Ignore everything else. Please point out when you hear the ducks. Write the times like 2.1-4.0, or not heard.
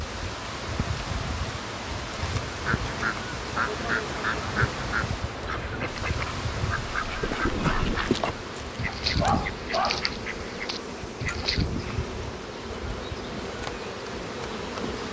2.5-11.9.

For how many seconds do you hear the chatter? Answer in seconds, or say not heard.
not heard.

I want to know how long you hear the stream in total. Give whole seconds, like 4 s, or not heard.
15 s.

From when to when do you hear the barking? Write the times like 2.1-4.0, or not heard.
8.8-10.1.